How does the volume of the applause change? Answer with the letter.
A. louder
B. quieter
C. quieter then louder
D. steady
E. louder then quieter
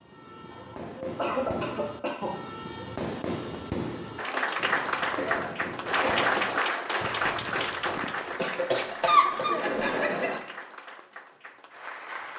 B.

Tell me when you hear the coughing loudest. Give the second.
9 s.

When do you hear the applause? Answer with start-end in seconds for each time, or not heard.
4.2-12.3.